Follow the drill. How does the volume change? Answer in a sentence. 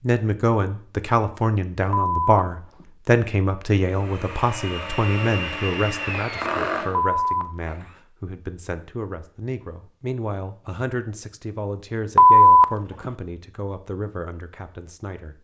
The volume of the drill goes up, then down.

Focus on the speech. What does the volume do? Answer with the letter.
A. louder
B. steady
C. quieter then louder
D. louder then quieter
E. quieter
E.